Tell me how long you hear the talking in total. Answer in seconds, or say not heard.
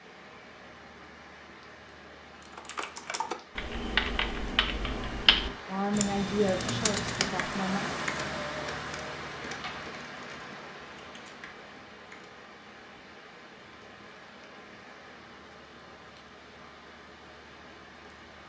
2 s.